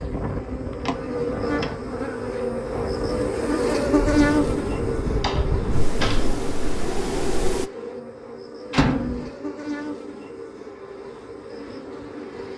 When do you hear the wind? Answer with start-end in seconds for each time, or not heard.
0.0-7.7.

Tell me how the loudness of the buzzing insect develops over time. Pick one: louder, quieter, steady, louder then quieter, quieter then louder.
louder then quieter.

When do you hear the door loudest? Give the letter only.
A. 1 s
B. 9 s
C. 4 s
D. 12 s
B.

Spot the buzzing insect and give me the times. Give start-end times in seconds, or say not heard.
0.0-12.5.